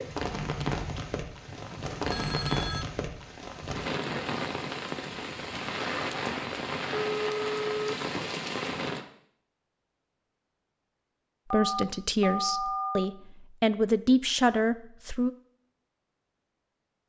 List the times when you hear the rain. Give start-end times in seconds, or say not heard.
0.0-9.1.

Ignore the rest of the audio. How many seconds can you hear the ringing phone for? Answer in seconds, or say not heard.
4 s.